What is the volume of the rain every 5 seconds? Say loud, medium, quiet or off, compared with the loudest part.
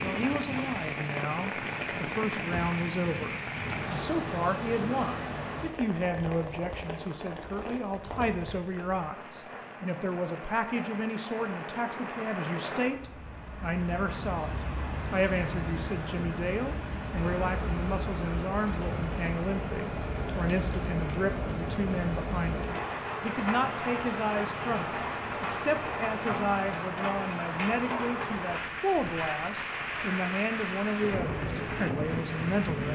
loud, medium, medium, loud, loud, loud, loud.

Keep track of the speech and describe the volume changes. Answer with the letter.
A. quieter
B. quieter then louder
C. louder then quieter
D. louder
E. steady
E.